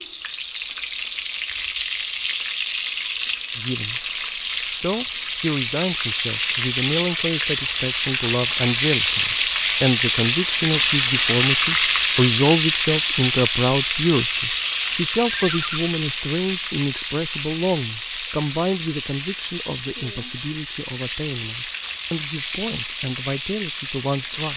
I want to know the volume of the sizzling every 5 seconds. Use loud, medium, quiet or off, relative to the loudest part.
medium, loud, loud, medium, medium.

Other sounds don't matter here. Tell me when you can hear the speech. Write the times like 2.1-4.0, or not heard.
3.5-4.0, 4.7-24.5.